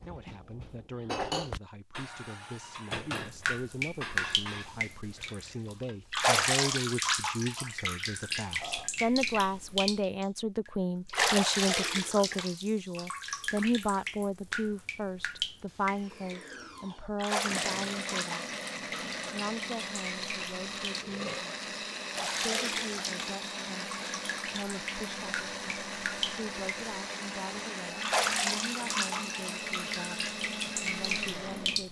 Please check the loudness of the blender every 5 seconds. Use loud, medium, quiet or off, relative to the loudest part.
off, off, off, loud, loud, loud, loud.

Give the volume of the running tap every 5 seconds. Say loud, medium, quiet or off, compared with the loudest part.
loud, loud, loud, medium, medium, loud, loud.